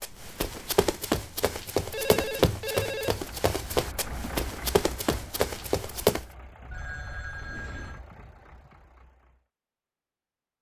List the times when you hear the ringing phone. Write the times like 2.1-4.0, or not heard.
1.9-3.1, 6.7-8.0.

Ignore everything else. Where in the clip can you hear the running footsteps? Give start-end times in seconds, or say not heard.
0.0-6.2.